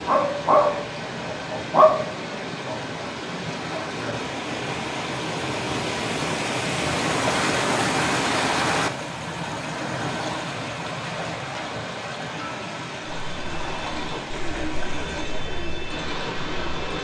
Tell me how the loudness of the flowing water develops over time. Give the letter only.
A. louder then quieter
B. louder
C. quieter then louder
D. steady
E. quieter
A.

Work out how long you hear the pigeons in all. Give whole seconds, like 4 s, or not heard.
4 s.